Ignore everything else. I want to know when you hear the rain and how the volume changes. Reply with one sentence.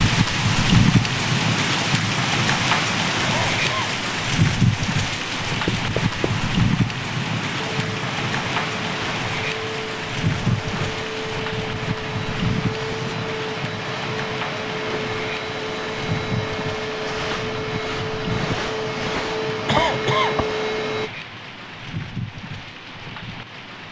The rain can be heard from 0.0 to 23.8 s, getting quieter.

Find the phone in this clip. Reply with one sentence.
You can't hear the phone here.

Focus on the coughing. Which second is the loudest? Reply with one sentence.
The loudest moment of the coughing is at 20 seconds.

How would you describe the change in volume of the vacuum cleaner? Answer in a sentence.
The volume of the vacuum cleaner goes up.